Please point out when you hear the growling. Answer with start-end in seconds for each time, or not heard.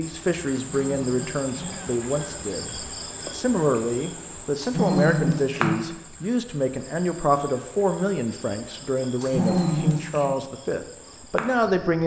0.7-1.9, 4.6-5.7, 9.2-10.3.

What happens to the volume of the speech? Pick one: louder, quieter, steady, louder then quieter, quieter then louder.
steady.